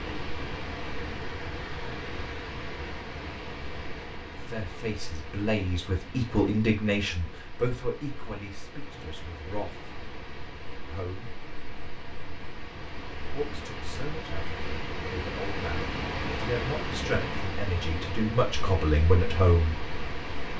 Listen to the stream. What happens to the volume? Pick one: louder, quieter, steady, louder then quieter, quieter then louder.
quieter then louder.